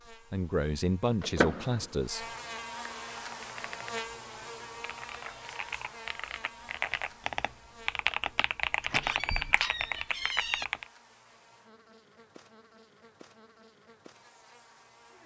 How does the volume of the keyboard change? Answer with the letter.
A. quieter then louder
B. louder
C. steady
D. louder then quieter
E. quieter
B.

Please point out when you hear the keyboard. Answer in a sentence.
The keyboard can be heard from 3.1 to 10.8 s.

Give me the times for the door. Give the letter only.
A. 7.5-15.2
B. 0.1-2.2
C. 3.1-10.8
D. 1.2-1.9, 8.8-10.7
D.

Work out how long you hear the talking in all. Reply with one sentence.
You can hear the talking for 2 seconds altogether.